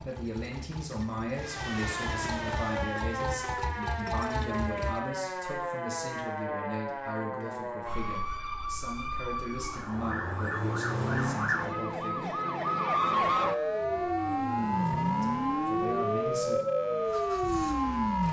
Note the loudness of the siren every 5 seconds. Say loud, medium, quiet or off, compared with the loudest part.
medium, medium, loud, loud.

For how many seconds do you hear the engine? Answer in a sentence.
The engine can be heard for 14 seconds in total.